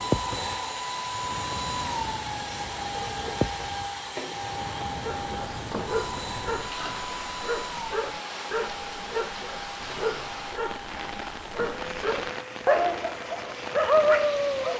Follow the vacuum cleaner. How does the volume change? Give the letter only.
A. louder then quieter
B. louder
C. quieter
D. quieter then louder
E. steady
C.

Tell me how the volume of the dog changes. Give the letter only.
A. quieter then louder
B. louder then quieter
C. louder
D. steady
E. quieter
C.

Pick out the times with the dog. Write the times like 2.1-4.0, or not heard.
5.0-14.7.